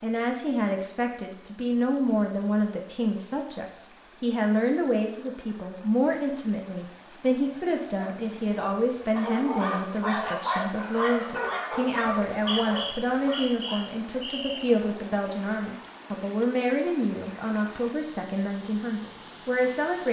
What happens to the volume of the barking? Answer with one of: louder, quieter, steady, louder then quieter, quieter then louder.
louder then quieter.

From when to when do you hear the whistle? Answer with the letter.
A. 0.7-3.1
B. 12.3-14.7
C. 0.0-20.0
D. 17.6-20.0
B.